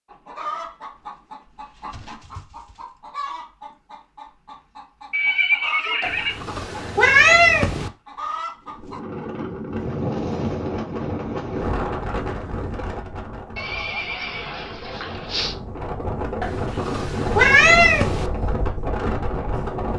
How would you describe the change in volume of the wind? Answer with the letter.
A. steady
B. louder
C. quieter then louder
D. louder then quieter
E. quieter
C.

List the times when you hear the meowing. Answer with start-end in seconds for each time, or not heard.
6.0-7.9, 16.4-18.3.